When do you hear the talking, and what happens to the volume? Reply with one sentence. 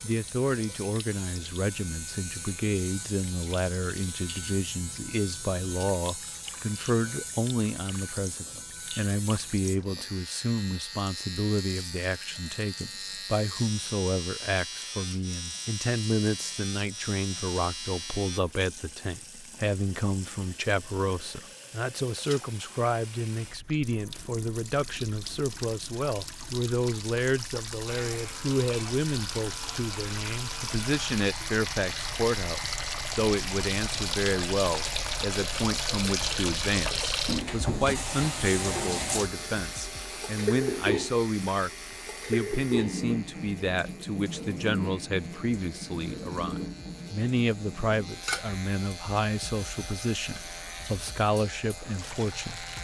You can hear the talking from 0.0 to 52.6 s, at a steady volume.